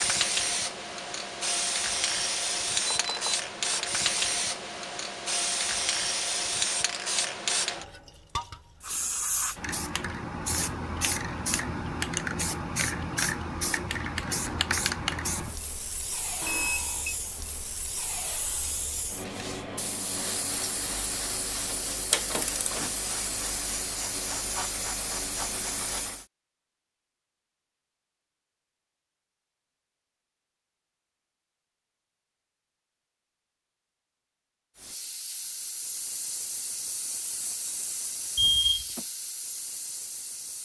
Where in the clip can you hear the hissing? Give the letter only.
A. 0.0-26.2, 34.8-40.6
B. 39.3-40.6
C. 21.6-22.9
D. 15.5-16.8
A.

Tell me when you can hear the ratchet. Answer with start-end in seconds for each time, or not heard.
21.6-22.9.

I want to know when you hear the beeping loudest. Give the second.
39 s.